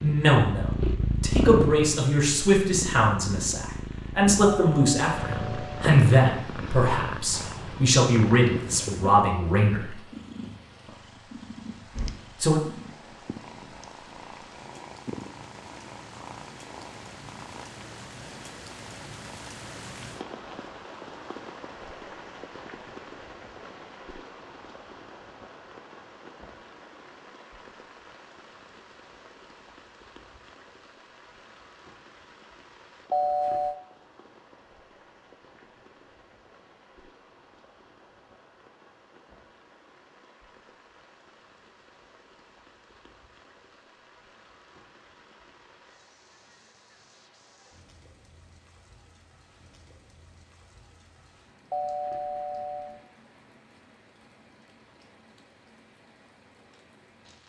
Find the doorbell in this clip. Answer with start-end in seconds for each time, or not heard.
4.5-5.8, 33.1-33.8, 51.7-53.0.